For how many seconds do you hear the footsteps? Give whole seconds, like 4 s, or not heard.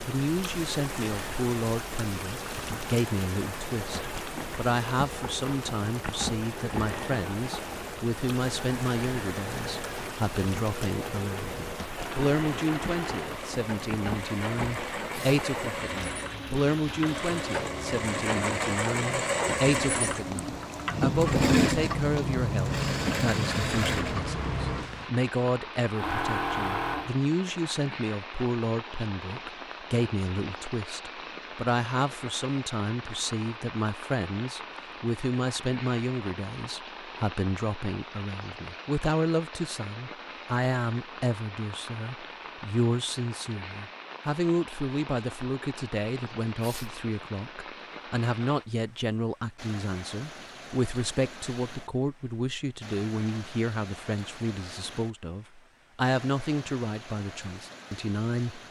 not heard.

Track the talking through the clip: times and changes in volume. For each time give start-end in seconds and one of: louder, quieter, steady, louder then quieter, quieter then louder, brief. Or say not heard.
0.1-58.6 steady.